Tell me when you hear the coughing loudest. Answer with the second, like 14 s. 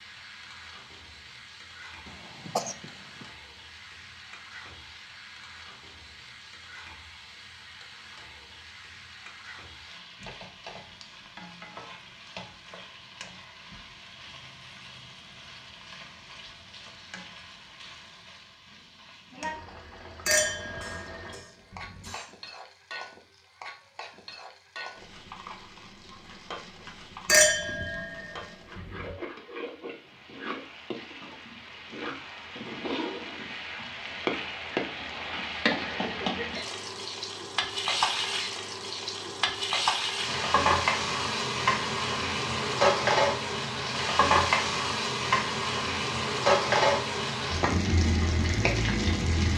3 s.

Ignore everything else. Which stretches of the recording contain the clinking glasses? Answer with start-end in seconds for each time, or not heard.
20.2-22.1, 27.2-29.1.